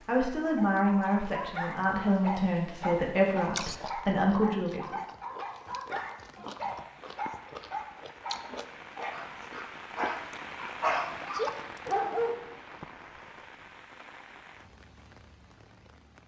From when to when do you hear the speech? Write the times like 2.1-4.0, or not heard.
0.1-5.0.